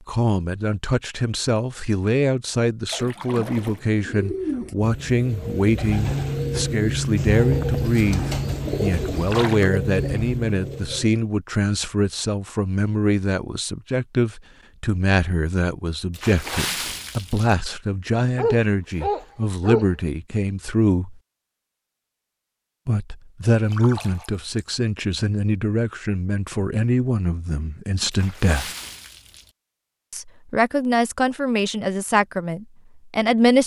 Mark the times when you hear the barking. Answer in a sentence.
You can hear the barking from 18.4 to 19.9 s.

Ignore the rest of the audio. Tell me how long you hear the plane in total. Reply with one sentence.
You can't hear the plane here.